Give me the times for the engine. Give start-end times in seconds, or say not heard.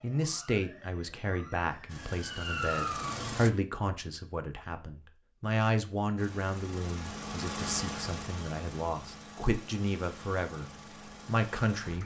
1.9-3.5, 6.2-12.0.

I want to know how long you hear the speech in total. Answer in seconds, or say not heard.
12 s.